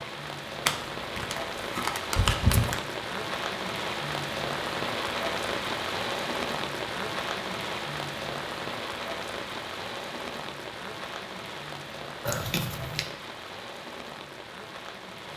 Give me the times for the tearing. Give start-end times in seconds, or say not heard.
0.7-2.8, 12.2-13.1.